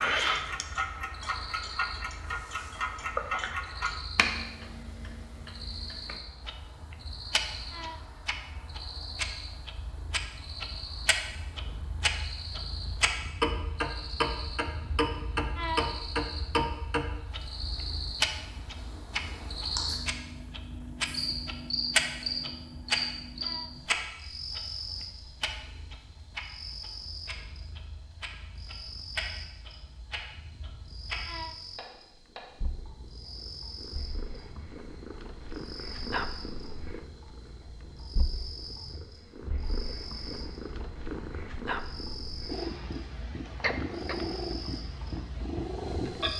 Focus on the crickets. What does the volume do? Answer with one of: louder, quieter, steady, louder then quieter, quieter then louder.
louder then quieter.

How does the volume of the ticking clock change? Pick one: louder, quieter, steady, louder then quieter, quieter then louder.
quieter then louder.